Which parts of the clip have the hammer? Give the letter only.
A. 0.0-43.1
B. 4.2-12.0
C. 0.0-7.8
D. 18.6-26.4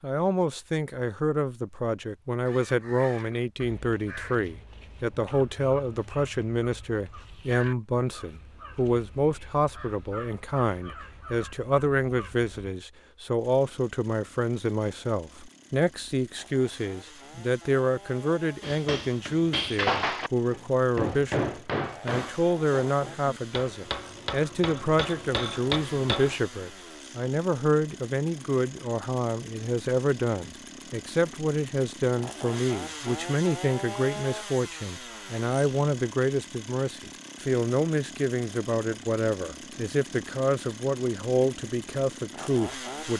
D.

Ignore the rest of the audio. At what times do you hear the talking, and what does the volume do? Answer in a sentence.
The talking can be heard from 0.0 to 43.1 s, at a steady volume.